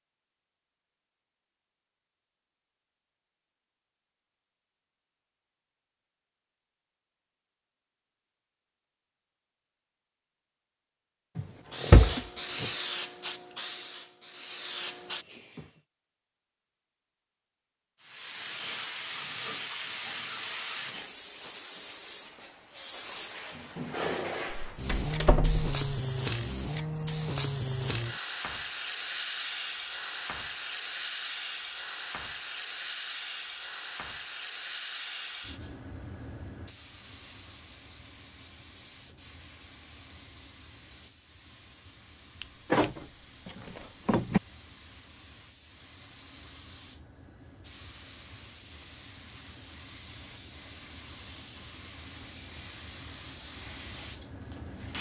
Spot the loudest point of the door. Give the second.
12 s.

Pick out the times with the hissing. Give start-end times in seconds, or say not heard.
11.7-15.7, 18.0-54.9.